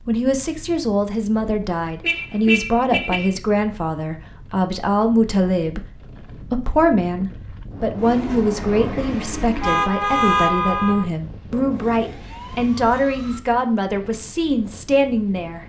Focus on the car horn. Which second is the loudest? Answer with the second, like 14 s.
10 s.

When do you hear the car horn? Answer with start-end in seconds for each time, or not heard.
2.0-3.4, 9.6-11.1.